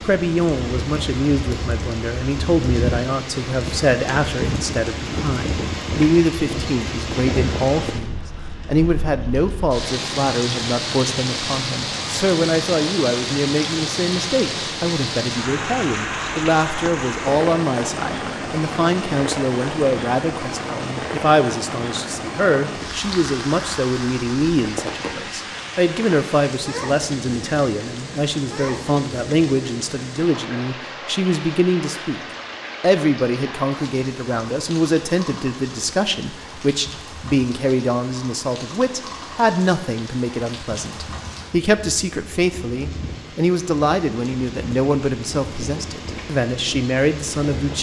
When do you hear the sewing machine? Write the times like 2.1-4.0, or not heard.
not heard.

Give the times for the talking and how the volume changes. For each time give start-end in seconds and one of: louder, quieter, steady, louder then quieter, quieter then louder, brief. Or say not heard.
0.0-32.2 steady
32.8-47.7 steady.